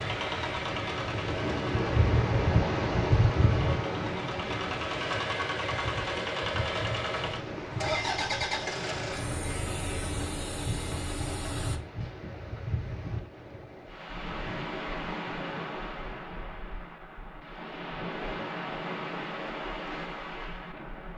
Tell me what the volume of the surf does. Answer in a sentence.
The loudness of the surf goes down.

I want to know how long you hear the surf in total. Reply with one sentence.
You can hear the surf for 21 seconds altogether.